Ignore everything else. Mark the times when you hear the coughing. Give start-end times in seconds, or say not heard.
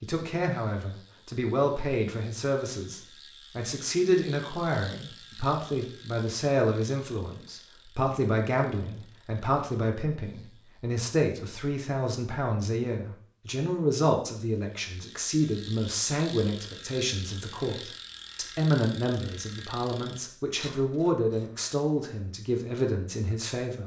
not heard.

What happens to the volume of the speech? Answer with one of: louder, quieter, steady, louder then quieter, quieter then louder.
steady.